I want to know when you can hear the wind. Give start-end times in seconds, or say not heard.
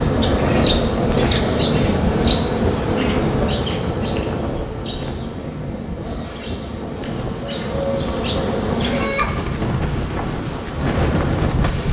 0.0-11.8.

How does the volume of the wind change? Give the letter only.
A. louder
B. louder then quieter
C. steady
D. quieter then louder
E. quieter
D.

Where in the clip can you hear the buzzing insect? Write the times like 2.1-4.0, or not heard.
0.0-11.8.